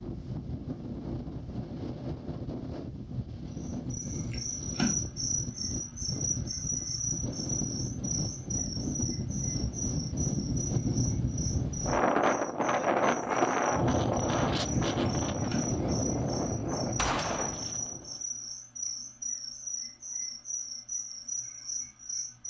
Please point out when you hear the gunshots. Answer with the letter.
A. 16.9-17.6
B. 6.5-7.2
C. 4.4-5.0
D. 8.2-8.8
A.